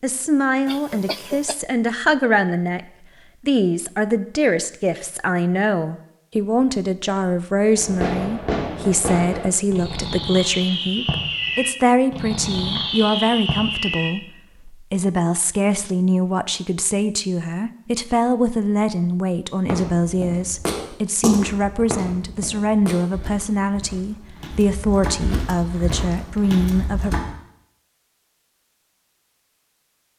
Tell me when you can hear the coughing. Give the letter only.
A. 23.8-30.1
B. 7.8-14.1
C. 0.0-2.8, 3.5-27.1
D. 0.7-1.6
D.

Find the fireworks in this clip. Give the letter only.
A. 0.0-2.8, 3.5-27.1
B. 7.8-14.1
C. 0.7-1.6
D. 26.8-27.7
B.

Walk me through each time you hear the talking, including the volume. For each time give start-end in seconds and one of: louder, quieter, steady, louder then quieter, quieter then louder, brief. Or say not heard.
0.0-2.8 brief
3.5-27.1 steady.